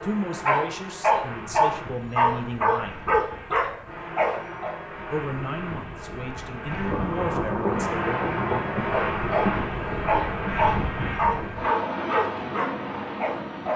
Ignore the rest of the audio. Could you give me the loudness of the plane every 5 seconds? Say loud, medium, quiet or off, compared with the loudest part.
medium, loud, loud.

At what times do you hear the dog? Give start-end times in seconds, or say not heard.
0.0-4.8, 8.8-13.7.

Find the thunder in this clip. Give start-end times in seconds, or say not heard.
6.7-11.6.